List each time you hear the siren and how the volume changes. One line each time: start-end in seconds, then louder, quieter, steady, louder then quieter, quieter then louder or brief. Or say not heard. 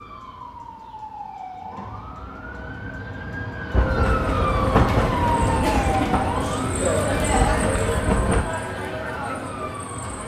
0.0-10.2 louder then quieter.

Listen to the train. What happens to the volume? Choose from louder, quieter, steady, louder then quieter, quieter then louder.
quieter then louder.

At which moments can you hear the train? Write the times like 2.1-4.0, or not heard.
3.7-8.4.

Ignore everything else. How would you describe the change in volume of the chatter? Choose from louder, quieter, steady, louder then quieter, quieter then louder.
louder then quieter.